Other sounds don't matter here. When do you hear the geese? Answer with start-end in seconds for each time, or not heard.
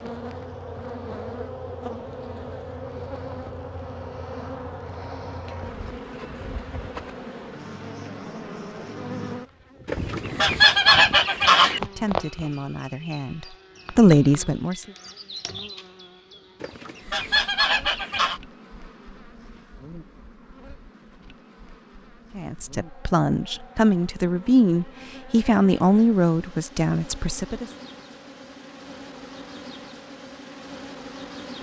9.8-11.8, 16.6-18.4.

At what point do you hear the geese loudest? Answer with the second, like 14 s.
11 s.